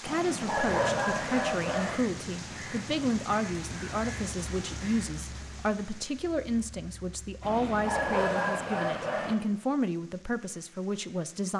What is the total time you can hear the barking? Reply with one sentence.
You can hear the barking for 4 seconds altogether.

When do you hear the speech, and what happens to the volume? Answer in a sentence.
You can hear the speech from 0.0 to 11.5 s, at a steady volume.